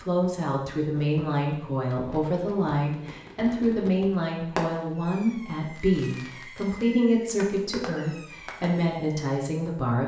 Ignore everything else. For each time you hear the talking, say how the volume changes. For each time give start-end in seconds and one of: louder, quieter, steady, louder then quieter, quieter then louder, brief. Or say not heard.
0.0-10.0 steady.